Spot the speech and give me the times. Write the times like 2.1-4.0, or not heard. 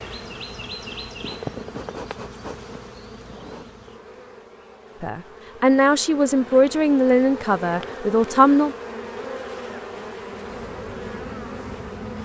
5.0-8.8.